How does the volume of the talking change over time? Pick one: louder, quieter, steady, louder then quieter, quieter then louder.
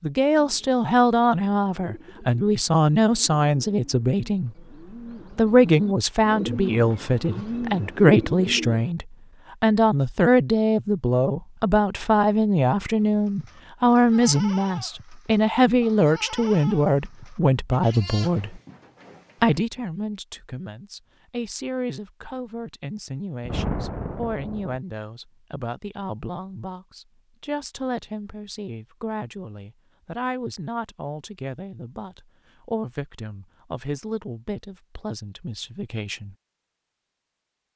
quieter.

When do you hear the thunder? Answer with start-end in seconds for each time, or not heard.
23.4-24.8.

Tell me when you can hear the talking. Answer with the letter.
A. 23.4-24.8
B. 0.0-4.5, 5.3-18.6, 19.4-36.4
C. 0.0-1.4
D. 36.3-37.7
B.